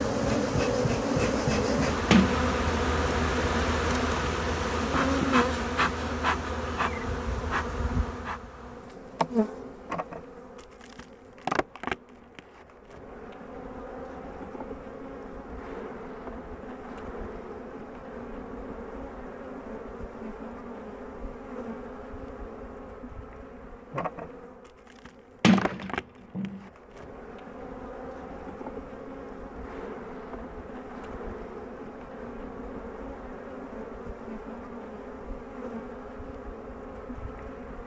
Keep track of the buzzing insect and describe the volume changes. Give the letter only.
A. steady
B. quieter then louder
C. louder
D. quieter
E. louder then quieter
D.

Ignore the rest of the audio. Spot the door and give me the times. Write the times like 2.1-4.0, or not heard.
2.1-2.6, 25.4-26.6.